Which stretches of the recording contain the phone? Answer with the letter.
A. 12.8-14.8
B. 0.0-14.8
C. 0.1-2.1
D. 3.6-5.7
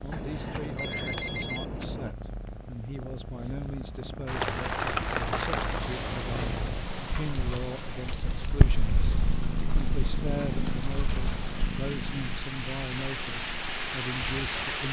C.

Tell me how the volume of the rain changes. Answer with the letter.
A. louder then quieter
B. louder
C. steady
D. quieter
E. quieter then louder
E.